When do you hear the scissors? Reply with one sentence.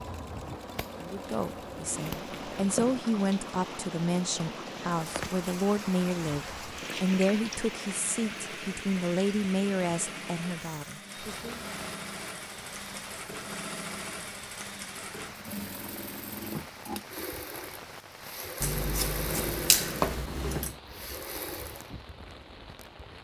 The scissors can be heard from 0.6 to 3.0 s and from 18.6 to 20.8 s.